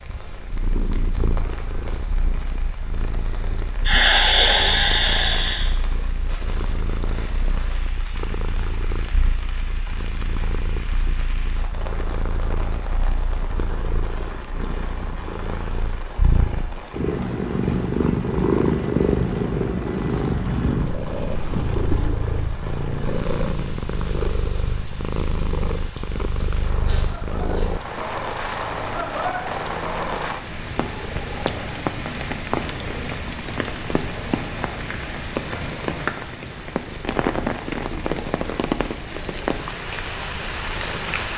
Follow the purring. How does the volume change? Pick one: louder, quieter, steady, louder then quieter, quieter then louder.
louder then quieter.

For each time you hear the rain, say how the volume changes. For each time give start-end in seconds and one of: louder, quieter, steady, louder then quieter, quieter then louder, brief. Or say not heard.
0.0-41.3 louder.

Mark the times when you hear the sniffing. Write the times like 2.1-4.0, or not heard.
3.9-5.7, 26.4-27.8.